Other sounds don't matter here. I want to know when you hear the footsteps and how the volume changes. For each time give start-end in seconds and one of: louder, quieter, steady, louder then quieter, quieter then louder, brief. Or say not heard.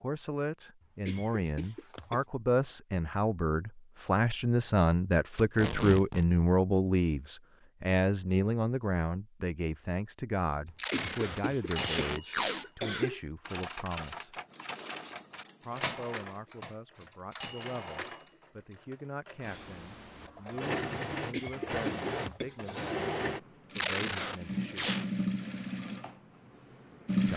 not heard.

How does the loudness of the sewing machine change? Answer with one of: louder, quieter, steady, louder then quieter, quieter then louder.
louder.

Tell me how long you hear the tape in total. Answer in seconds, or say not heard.
4 s.